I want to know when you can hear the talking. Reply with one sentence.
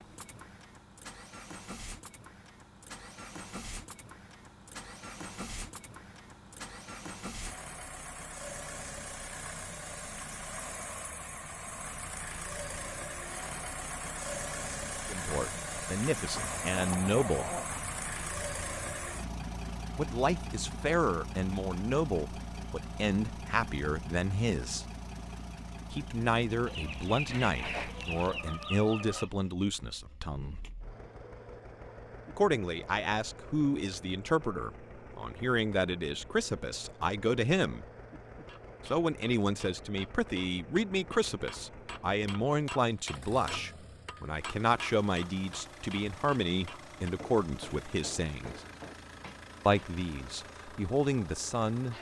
The talking can be heard from 15.1 to 17.5 s, from 19.9 to 24.9 s, from 25.9 to 30.6 s, from 32.4 to 37.9 s, from 38.9 to 48.6 s and from 49.6 to 51.9 s.